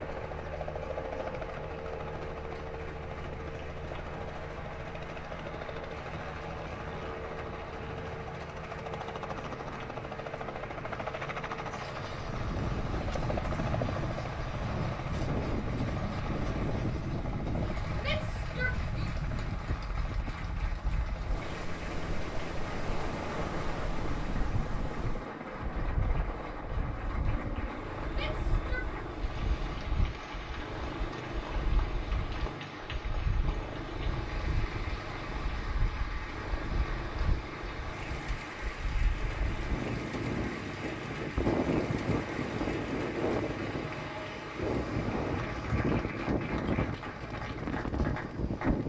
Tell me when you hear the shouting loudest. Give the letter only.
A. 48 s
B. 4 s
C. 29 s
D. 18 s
D.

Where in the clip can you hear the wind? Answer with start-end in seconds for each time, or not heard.
0.0-48.8.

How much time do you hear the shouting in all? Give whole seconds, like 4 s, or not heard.
2 s.